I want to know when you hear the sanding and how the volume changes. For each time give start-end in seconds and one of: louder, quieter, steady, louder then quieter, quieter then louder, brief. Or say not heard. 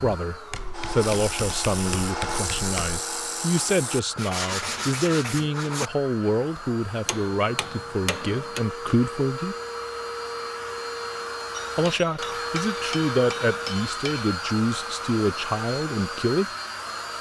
0.7-5.9 steady.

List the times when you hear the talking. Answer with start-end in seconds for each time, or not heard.
0.0-9.6, 11.8-16.4.